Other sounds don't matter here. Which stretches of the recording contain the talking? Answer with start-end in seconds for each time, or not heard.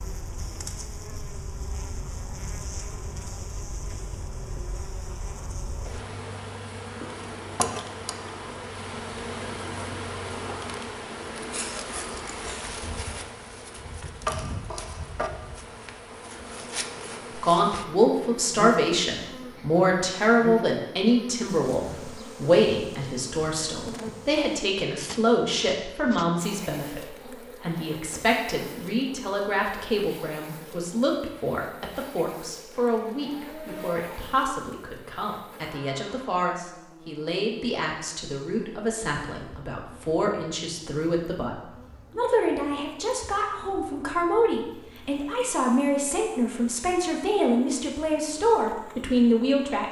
17.3-49.8.